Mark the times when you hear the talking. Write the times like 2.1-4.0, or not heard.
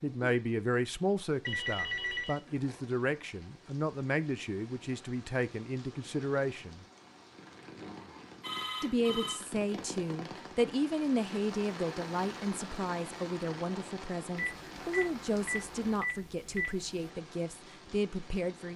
0.0-6.8, 8.8-18.7.